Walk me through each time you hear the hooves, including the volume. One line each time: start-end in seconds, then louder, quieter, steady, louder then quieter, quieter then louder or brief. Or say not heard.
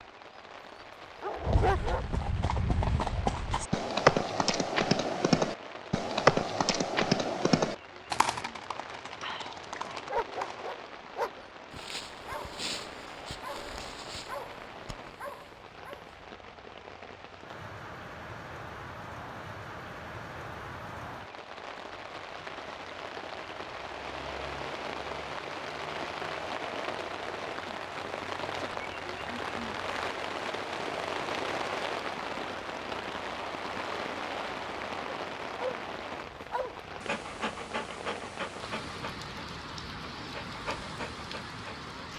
1.4-10.7 louder then quieter.